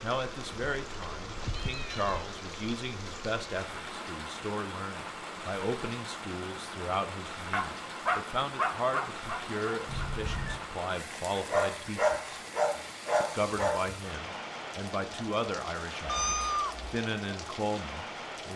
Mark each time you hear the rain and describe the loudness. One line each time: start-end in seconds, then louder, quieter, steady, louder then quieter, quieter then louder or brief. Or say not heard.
0.0-18.5 steady.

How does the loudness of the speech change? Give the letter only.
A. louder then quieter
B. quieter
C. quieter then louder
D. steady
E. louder
D.